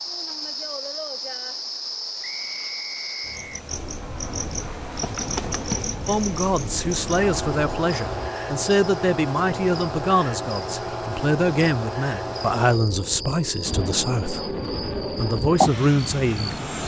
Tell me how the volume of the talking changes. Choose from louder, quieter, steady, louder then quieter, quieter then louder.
steady.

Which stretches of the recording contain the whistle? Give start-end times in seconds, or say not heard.
2.2-3.6.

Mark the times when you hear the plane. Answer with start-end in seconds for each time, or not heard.
3.7-8.3, 13.6-16.8.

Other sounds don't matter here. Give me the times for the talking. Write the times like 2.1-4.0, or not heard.
6.0-16.6.